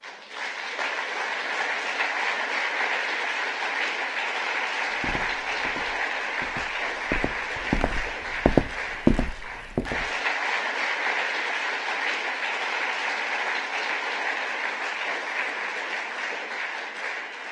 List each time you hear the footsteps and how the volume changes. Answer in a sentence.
You can hear the footsteps from 5.0 to 10.1 s, getting louder.